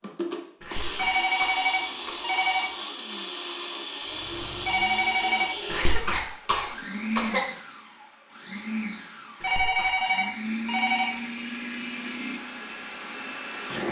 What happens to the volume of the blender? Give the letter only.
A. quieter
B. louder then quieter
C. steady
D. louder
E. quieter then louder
C.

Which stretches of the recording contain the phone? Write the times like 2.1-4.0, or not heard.
0.9-2.6, 4.7-6.0, 9.4-11.1.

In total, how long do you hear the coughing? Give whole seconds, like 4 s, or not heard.
4 s.